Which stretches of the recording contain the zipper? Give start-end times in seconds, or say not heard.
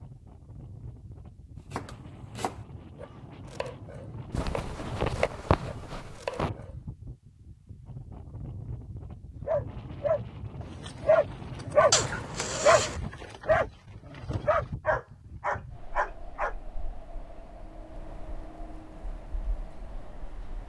4.3-6.5, 11.9-13.0.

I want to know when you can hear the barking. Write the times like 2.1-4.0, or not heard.
9.4-16.6.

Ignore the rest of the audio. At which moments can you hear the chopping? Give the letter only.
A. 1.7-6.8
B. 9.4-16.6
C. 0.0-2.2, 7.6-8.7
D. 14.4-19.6
A.